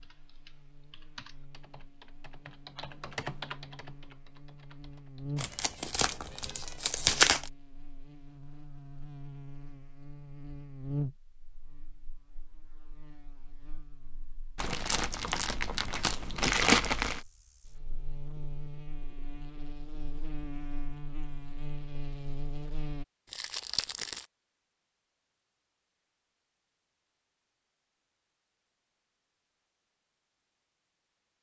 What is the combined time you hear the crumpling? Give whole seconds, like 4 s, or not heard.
6 s.